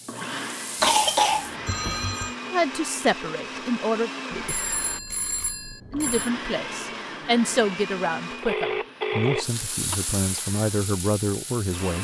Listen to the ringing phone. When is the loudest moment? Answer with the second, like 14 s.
9 s.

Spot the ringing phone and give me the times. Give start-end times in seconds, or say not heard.
1.6-2.4, 4.3-6.3, 8.4-10.4.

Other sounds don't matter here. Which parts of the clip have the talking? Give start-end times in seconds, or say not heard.
2.5-4.1, 5.9-11.9.